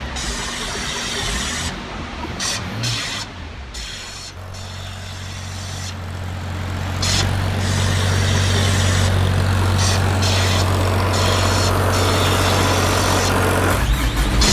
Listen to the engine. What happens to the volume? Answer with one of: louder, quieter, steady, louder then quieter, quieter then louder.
louder.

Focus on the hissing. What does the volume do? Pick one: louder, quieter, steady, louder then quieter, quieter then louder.
quieter then louder.